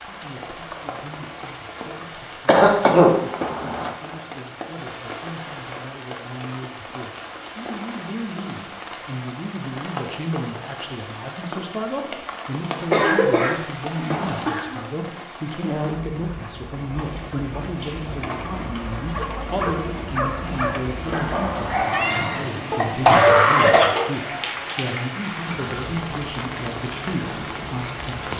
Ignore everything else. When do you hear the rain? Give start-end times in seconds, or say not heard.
0.0-28.3.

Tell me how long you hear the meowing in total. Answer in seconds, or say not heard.
4 s.